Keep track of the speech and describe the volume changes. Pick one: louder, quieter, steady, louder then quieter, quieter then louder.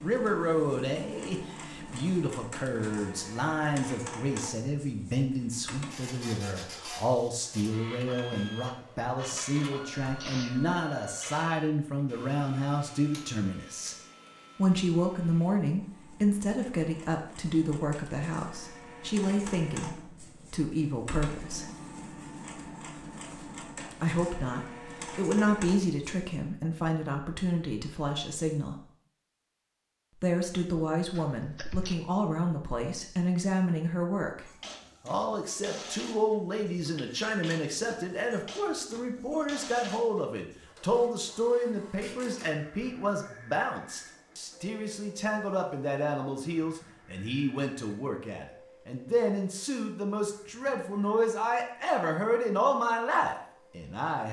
steady.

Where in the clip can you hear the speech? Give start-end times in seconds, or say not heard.
0.0-13.9, 14.6-21.6, 24.0-28.8, 30.2-54.2.